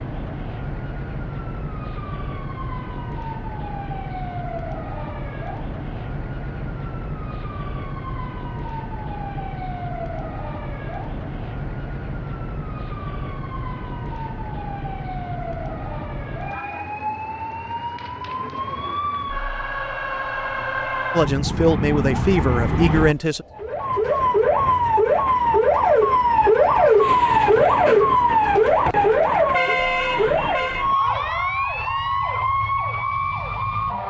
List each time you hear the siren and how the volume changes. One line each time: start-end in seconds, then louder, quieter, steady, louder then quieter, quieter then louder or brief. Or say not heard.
0.0-34.0 louder.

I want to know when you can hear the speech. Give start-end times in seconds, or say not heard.
21.1-23.4.